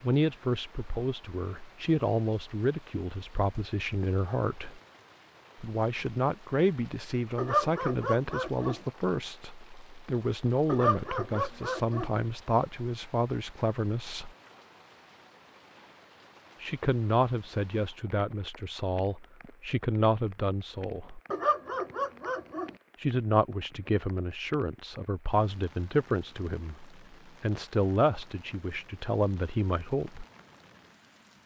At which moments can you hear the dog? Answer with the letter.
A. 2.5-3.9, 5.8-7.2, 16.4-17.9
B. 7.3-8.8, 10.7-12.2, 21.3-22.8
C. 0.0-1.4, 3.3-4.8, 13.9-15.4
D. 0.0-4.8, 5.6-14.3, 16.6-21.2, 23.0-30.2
B.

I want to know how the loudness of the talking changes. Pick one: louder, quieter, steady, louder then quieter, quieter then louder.
steady.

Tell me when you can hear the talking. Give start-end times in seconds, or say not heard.
0.0-4.8, 5.6-14.3, 16.6-21.2, 23.0-30.2.